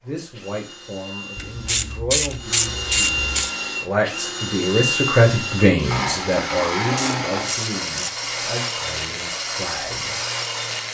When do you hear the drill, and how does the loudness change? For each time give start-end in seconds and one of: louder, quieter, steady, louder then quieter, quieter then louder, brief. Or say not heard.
0.0-10.8 louder.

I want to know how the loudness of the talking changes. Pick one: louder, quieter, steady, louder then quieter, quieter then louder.
louder then quieter.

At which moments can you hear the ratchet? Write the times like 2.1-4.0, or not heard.
1.4-3.5, 7.0-8.3.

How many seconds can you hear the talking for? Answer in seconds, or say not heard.
10 s.